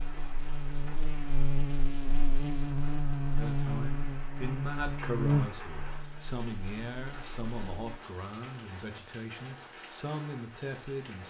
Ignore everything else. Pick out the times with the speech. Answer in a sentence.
The speech can be heard from 3.4 to 11.2 s.